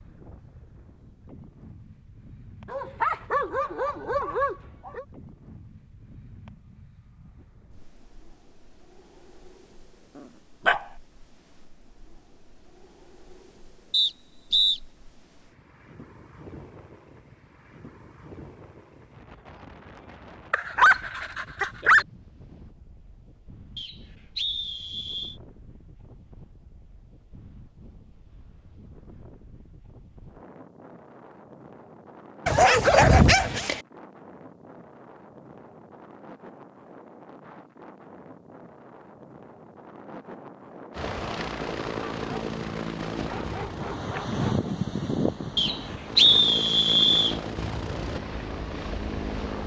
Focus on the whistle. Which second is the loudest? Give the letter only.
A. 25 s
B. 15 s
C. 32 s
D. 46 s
D.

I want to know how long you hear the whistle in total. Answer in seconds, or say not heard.
4 s.